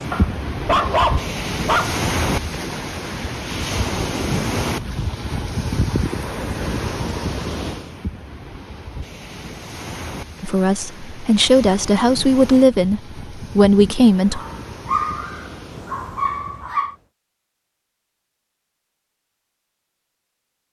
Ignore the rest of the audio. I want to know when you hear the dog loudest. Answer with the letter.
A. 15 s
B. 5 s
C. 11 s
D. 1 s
D.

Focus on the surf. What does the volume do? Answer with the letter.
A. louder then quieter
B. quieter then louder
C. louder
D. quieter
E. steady
D.